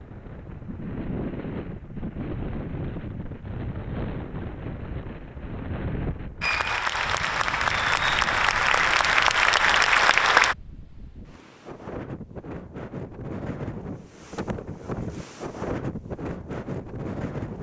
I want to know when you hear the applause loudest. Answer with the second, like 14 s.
10 s.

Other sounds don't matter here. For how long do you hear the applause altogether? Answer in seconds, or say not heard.
4 s.